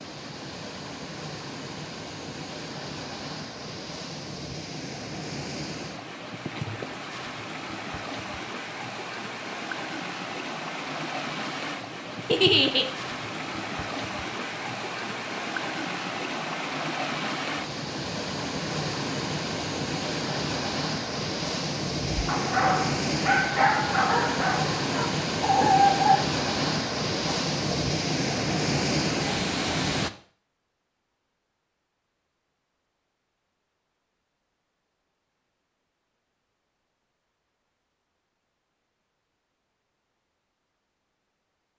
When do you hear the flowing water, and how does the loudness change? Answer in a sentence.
You can hear the flowing water from 0.0 to 30.1 s, getting louder.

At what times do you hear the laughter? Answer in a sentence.
The laughter can be heard from 12.2 to 12.8 s.